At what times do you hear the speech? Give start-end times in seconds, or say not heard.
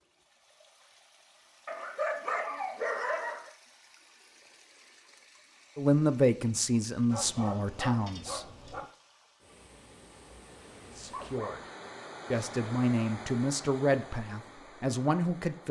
5.8-8.4, 10.8-11.7, 12.3-15.6.